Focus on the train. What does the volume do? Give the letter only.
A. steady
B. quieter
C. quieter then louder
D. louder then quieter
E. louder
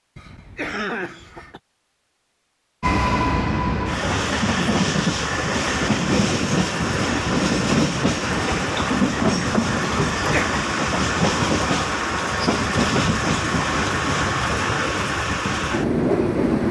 A.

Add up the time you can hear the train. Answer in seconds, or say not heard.
14 s.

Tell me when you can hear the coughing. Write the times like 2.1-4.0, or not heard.
0.1-1.6, 10.2-10.6.